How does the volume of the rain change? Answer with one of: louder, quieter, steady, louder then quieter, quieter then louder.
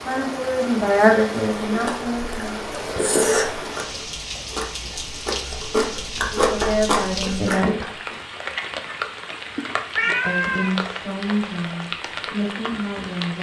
steady.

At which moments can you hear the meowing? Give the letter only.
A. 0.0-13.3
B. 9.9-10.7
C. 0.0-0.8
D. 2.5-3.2
B.